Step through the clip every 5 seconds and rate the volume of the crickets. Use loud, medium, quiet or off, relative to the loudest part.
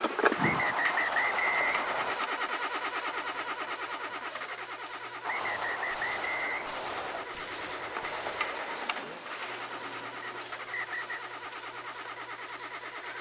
medium, loud, loud.